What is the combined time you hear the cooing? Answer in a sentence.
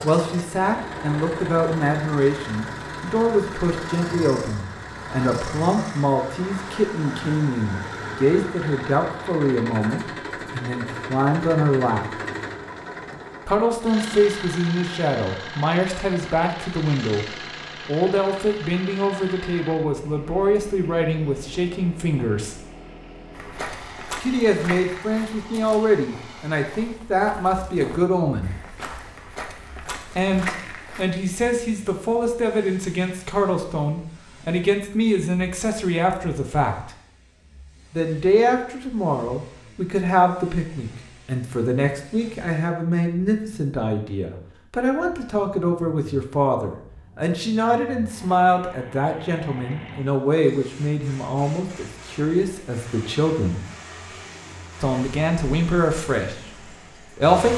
You can't hear the cooing here.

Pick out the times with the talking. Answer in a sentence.
You can hear the talking from 0.0 to 12.2 s, from 13.4 to 22.6 s, from 24.2 to 28.6 s, from 30.1 to 37.0 s, from 37.9 to 53.6 s and from 54.8 to 57.5 s.